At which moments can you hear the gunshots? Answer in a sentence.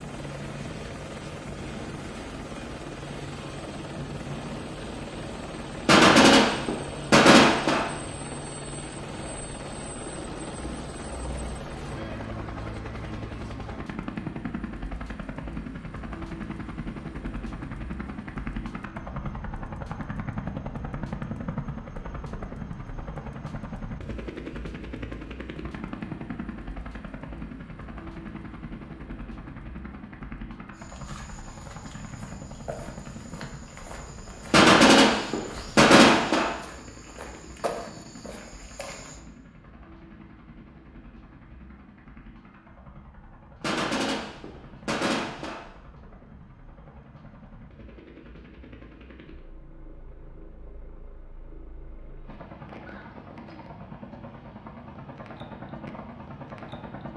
You can hear the gunshots from 5.8 to 7.8 s, from 34.5 to 36.5 s and from 43.6 to 45.6 s.